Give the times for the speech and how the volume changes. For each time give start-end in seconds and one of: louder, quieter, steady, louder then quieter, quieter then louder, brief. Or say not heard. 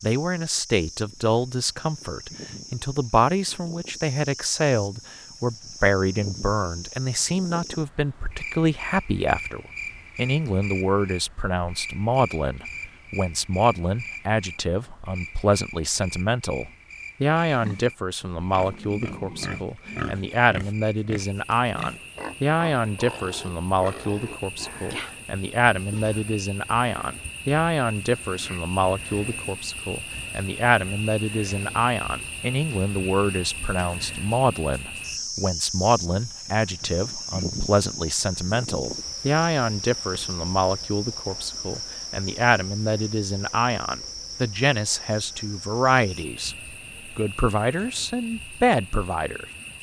0.0-46.5 steady
47.1-49.5 brief.